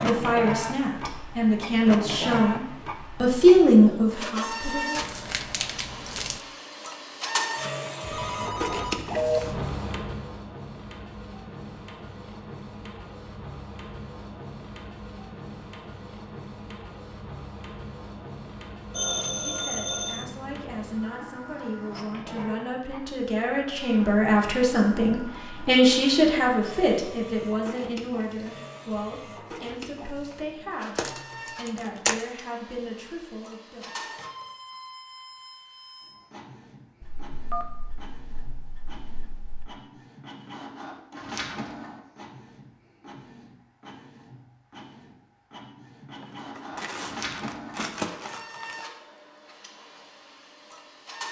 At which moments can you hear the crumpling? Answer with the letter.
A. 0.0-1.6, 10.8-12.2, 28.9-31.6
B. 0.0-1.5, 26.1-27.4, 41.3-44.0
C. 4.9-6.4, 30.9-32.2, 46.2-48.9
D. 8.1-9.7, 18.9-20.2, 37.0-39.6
C.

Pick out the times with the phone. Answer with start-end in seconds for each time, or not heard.
8.1-9.7, 18.9-20.2, 37.0-39.6.